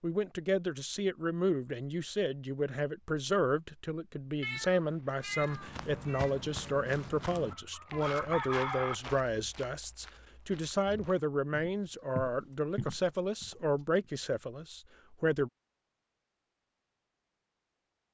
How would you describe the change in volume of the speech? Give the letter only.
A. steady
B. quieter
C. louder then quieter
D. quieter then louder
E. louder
A.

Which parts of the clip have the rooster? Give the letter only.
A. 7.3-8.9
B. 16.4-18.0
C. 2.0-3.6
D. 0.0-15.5
A.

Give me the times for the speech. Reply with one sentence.
The speech can be heard from 0.0 to 15.5 s.